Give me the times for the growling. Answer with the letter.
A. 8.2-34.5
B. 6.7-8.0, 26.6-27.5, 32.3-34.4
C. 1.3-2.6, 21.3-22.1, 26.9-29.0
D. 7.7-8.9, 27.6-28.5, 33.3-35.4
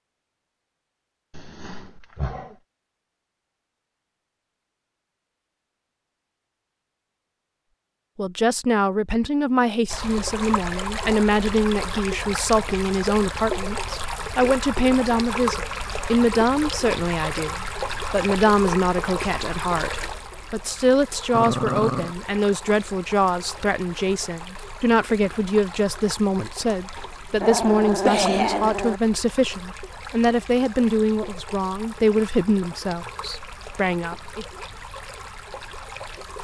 C.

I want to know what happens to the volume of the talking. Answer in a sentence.
The volume of the talking stays about the same.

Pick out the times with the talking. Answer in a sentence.
The talking can be heard from 8.2 to 34.5 s.